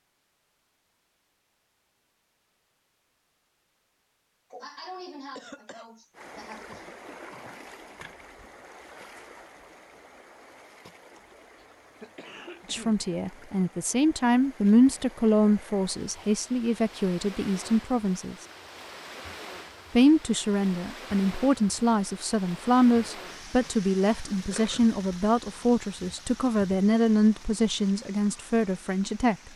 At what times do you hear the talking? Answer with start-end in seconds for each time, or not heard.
12.7-18.4, 19.9-29.4.